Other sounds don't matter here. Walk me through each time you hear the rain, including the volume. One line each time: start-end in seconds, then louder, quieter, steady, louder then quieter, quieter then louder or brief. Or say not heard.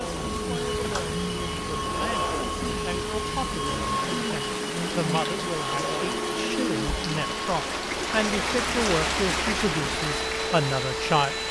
0.0-11.4 louder.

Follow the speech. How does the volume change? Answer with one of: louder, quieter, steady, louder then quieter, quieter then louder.
louder.